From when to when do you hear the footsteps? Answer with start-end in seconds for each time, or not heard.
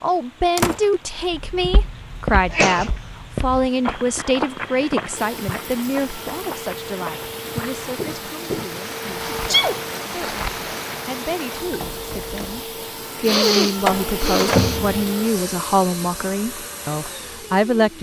1.2-10.7.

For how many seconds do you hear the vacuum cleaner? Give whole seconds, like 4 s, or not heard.
13 s.